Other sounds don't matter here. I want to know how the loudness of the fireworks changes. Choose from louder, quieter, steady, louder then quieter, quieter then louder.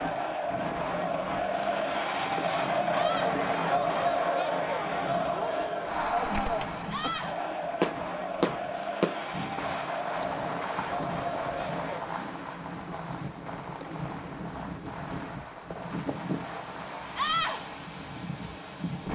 quieter.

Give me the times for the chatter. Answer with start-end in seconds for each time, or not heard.
0.0-12.0.